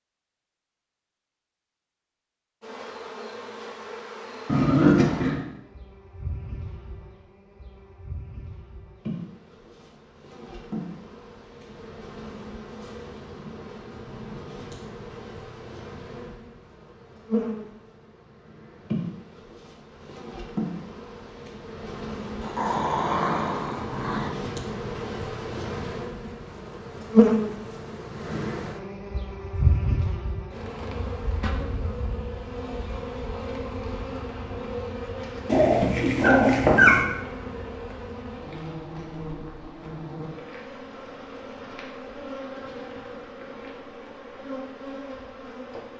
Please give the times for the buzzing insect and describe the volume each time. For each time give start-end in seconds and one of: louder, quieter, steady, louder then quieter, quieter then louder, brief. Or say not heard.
2.6-45.9 louder then quieter.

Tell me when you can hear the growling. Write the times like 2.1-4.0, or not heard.
4.5-5.4, 22.4-24.3, 35.5-37.0.